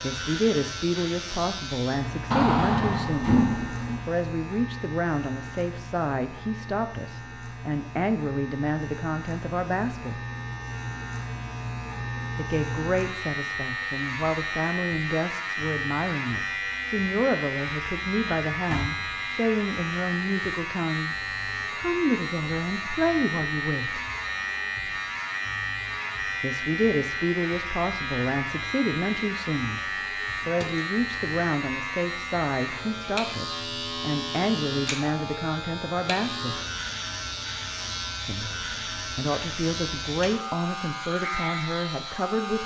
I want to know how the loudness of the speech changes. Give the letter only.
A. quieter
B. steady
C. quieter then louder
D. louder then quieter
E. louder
B.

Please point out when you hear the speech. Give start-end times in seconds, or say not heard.
0.0-3.4, 4.0-10.2, 12.3-24.0, 26.4-29.8, 30.4-36.6, 38.2-42.6.